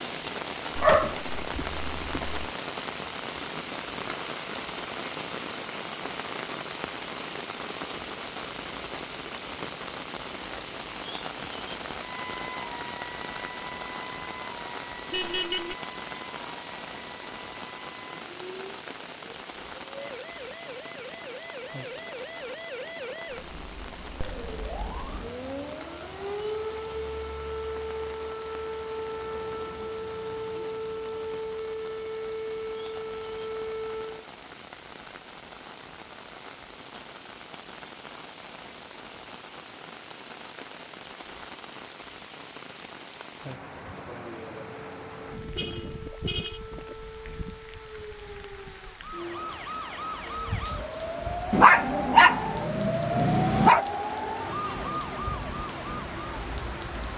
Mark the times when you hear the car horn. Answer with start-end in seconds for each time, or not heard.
15.1-15.8, 45.5-46.6.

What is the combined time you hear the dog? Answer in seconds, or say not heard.
4 s.